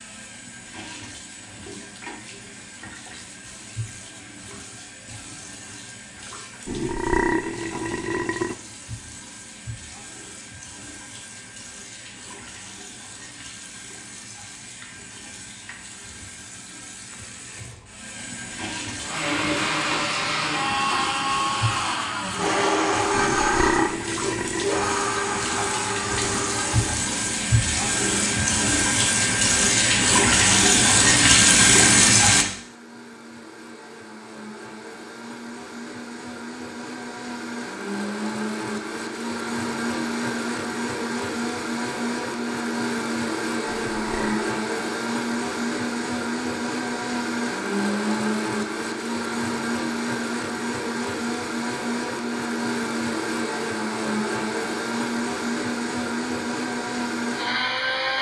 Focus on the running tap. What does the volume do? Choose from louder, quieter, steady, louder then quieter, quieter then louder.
louder.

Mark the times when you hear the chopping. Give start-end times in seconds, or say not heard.
not heard.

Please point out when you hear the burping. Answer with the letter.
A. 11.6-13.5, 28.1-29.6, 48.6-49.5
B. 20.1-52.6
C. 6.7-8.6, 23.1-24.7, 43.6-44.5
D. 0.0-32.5
C.